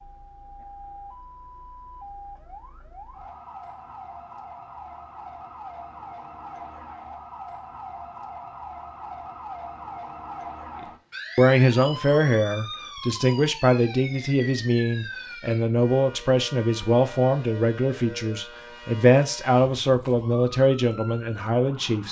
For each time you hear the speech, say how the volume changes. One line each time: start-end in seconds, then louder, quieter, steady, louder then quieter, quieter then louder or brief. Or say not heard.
11.3-22.0 steady.